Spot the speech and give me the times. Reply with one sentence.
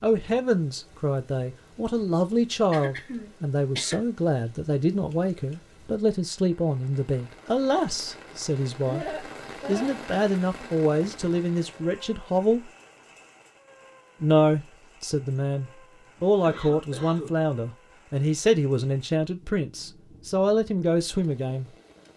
The speech can be heard from 0.0 to 12.7 s and from 14.2 to 21.7 s.